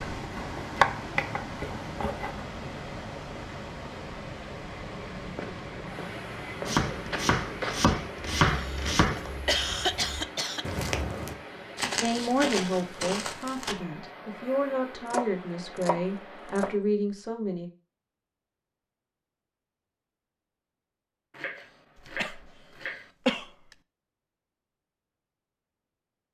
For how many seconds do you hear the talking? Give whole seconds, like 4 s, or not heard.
6 s.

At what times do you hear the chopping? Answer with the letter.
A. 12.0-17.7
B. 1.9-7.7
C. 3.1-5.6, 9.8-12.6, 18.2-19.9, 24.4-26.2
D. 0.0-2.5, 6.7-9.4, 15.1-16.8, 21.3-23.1
D.